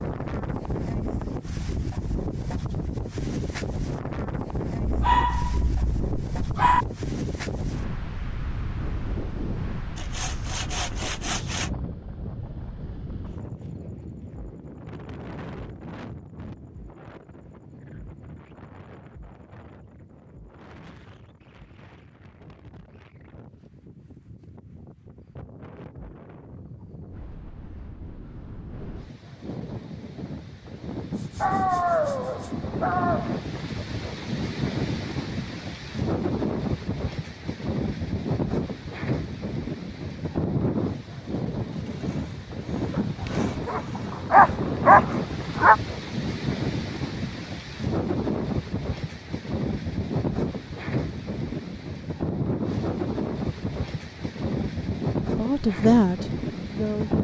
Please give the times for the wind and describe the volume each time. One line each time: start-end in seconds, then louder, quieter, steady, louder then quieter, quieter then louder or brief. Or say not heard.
0.0-57.1 quieter then louder.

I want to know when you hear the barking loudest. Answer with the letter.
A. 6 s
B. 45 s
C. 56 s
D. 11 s
B.